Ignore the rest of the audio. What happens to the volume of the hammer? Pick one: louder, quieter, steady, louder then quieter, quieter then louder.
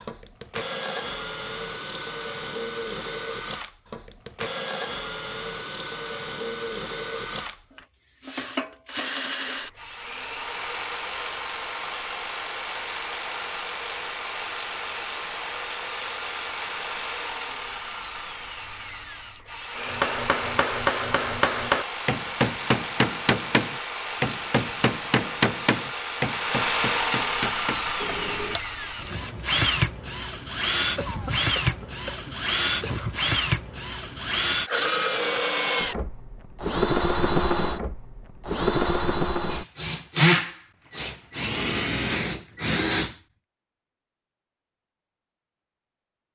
quieter.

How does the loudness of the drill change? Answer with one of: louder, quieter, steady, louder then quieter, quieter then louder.
louder.